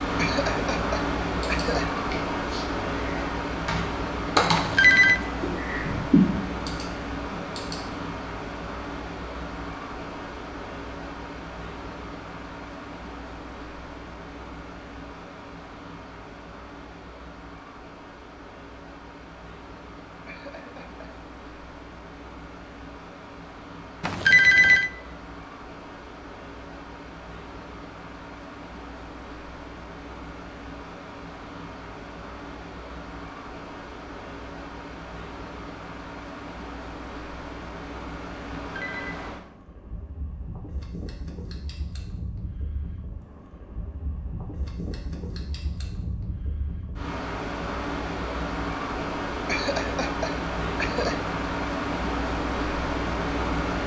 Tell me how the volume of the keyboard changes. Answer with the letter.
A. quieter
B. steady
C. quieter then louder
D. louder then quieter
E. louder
D.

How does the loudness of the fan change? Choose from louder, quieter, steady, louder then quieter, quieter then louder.
quieter then louder.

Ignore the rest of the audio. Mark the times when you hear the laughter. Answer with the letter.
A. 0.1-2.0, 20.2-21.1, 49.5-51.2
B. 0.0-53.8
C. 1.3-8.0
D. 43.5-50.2
A.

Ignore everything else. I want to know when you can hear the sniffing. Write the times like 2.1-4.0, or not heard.
not heard.